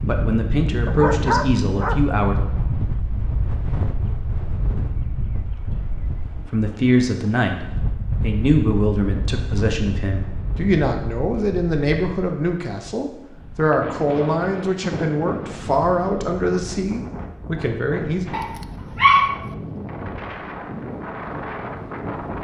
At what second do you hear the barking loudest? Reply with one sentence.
The volume of the barking peaks at 19 seconds.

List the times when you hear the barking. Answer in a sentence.
You can hear the barking from 0.8 to 2.9 s and from 18.3 to 19.4 s.